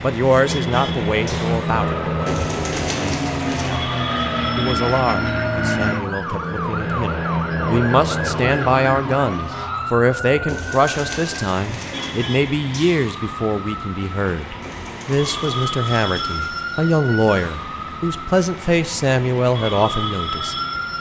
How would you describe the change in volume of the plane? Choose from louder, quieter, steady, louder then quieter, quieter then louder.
steady.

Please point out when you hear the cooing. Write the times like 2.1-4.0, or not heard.
2.2-3.8, 10.4-12.2, 14.6-16.6.